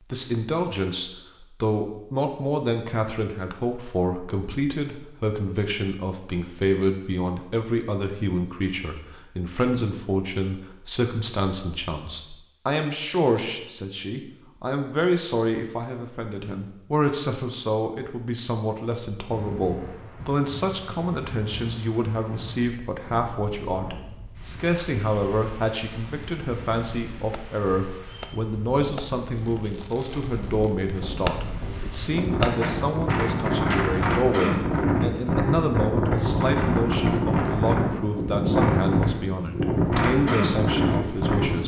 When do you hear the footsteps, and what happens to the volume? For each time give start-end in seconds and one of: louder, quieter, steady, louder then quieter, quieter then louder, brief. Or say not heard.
not heard.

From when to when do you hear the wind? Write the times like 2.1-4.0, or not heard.
19.2-41.6.